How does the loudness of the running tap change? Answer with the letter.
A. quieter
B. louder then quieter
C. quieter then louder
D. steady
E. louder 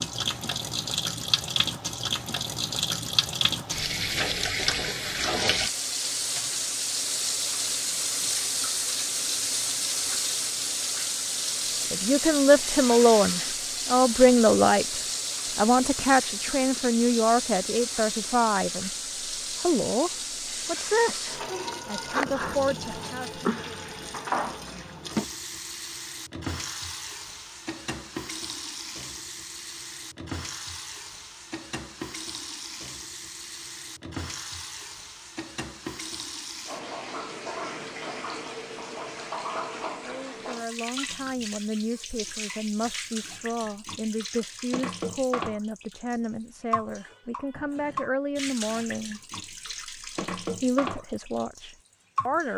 A.